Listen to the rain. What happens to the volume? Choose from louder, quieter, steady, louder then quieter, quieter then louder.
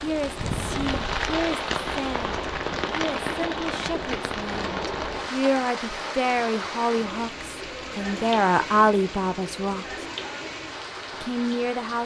quieter.